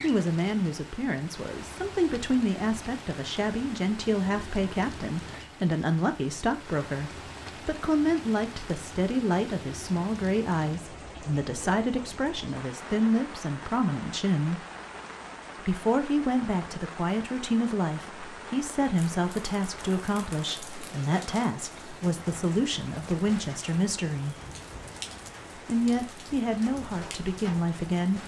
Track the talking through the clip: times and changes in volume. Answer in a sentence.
You can hear the talking from 0.0 to 14.7 s, at a steady volume; from 15.6 to 24.4 s, at a steady volume; and briefly from 25.6 to 28.2 s.